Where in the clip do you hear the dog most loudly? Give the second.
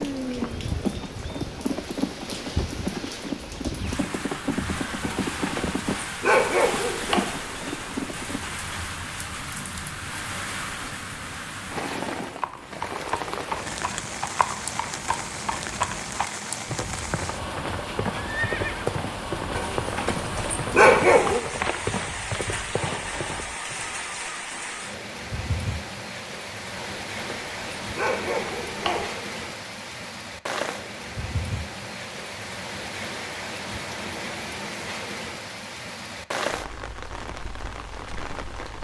21 s.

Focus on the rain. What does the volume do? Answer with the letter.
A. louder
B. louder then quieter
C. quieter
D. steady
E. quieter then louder
D.